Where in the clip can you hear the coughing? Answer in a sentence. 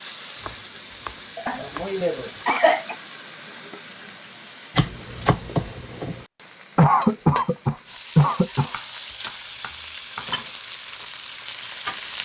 The coughing can be heard from 1.4 to 3.0 s and from 6.8 to 8.7 s.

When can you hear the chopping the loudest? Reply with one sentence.
The loudest moment of the chopping is at 5 seconds.